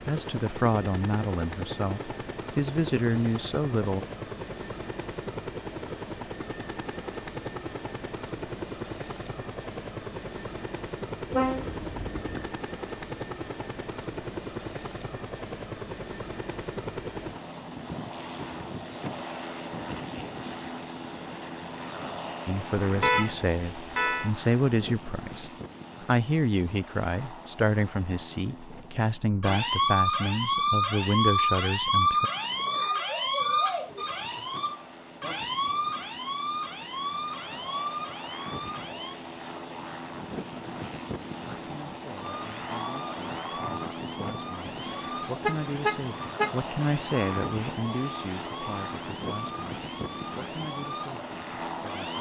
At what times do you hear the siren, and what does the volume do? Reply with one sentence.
The siren can be heard from 29.4 to 39.2 s, getting quieter; and from 42.1 to 52.1 s, at a steady volume.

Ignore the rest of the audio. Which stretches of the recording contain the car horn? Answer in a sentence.
The car horn can be heard from 11.3 to 12.5 s, from 23.0 to 24.3 s and from 45.4 to 46.5 s.